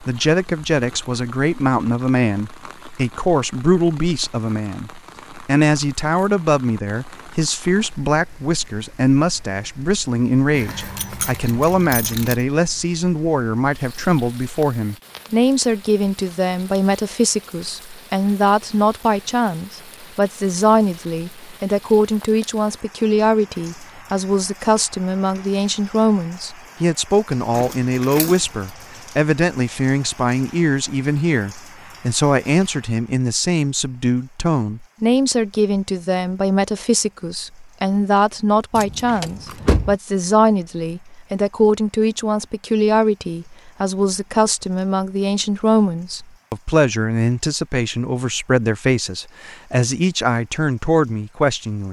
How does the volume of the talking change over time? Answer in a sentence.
The loudness of the talking stays about the same.